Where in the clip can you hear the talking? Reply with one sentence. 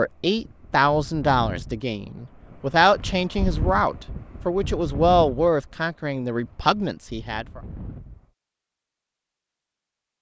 The talking can be heard from 0.0 to 7.6 s.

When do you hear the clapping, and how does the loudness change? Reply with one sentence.
The clapping can't be heard in this clip.